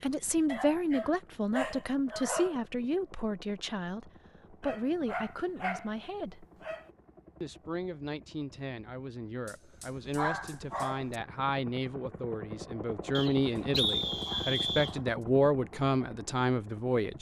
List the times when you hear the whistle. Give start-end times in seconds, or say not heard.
13.1-14.9.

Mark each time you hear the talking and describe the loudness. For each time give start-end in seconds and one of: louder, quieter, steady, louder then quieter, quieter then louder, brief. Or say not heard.
0.0-6.5 quieter
7.4-17.1 louder.